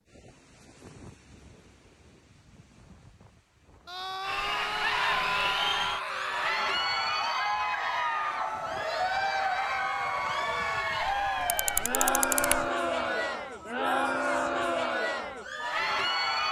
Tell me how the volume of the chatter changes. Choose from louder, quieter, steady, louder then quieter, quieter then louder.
steady.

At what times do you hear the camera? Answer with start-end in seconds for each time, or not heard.
11.0-12.7.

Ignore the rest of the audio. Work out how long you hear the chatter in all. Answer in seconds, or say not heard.
12 s.